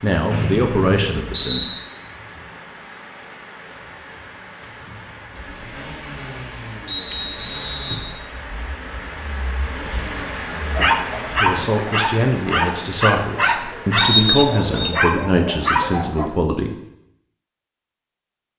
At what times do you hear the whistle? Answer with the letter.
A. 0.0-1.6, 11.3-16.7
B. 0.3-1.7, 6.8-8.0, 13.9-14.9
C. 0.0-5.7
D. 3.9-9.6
B.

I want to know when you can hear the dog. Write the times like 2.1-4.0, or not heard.
10.6-16.3.